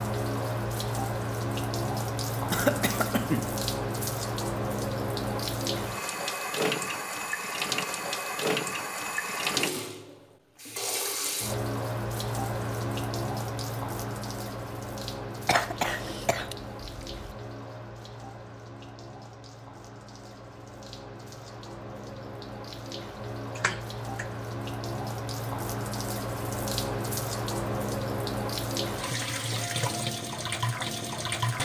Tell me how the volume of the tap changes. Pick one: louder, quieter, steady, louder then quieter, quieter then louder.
quieter then louder.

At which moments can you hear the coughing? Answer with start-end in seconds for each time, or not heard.
2.5-3.6, 15.4-17.4, 23.6-24.2.